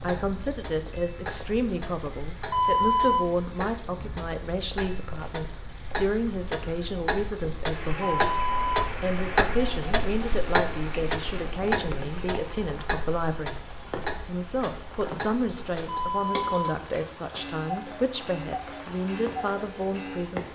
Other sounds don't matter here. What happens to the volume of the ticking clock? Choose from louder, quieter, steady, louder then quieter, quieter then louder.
louder then quieter.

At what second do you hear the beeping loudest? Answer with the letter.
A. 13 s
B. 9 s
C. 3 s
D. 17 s
C.